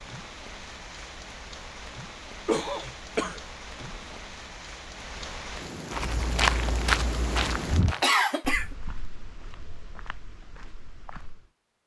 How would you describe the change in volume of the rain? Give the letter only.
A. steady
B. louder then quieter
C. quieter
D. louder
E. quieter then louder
D.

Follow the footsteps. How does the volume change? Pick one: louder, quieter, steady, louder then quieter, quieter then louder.
quieter.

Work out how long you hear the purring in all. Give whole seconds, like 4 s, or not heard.
not heard.